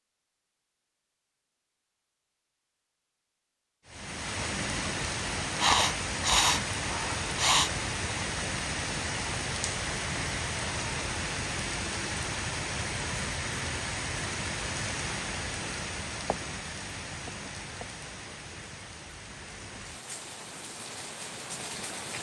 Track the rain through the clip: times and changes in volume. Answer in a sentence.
You can hear the rain from 3.9 to 22.1 s, getting quieter.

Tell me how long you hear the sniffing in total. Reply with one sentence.
The sniffing can be heard for 2 seconds in total.